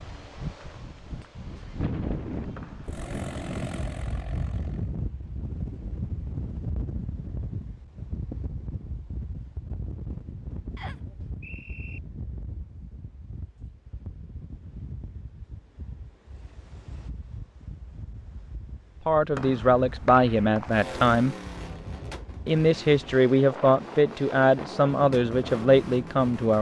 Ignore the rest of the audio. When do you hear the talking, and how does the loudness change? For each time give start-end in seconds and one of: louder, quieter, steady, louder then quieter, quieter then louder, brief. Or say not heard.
19.1-21.4 brief
22.4-26.5 steady.